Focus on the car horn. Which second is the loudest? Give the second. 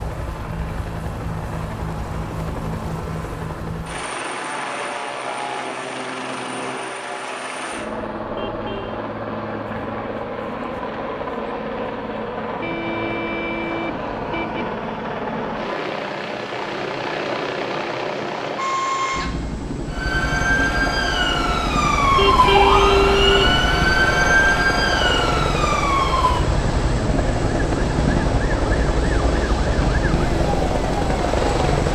23 s.